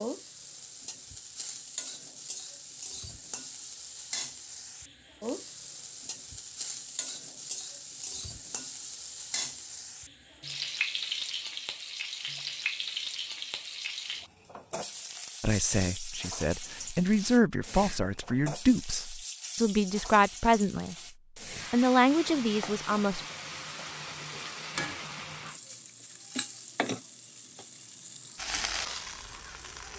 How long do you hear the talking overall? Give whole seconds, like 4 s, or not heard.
7 s.